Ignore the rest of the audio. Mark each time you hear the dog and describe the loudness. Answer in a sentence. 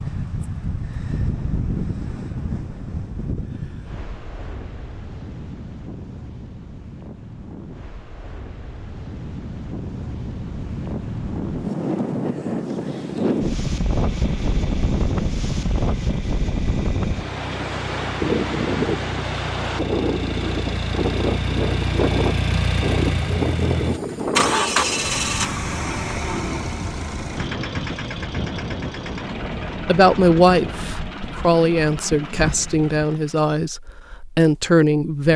You can't hear the dog here.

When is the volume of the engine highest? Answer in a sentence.
The loudest moment of the engine is at 25 seconds.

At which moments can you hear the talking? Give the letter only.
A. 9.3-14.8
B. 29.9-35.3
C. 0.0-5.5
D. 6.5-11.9
B.